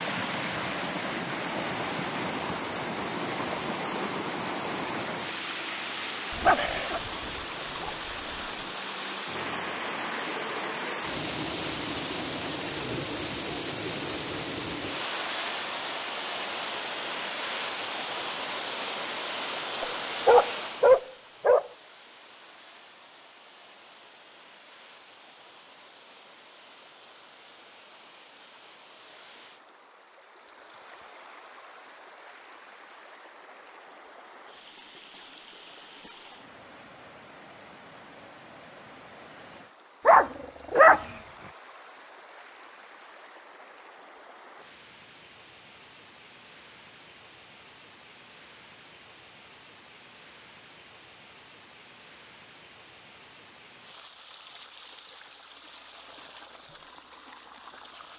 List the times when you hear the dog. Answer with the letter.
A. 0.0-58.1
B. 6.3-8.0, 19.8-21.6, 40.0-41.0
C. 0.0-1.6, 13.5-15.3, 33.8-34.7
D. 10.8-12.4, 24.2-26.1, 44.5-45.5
B.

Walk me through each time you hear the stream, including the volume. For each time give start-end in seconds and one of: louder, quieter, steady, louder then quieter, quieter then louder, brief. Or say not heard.
0.0-58.1 quieter.